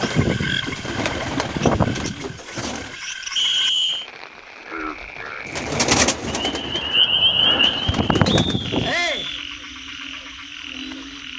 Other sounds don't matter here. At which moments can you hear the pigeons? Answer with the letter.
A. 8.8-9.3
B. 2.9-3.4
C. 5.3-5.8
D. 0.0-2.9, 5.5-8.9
D.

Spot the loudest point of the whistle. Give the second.
4 s.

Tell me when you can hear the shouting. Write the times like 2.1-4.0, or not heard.
8.8-9.3.